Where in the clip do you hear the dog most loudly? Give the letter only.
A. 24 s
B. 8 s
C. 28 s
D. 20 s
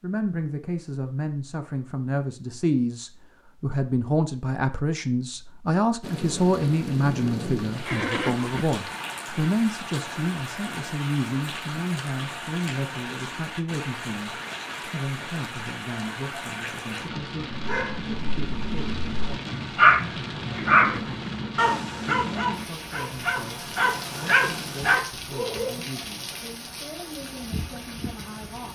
D.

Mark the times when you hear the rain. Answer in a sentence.
The rain can be heard from 6.0 to 28.7 s.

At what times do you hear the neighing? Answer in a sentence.
The neighing can be heard from 7.8 to 8.7 s and from 20.5 to 21.3 s.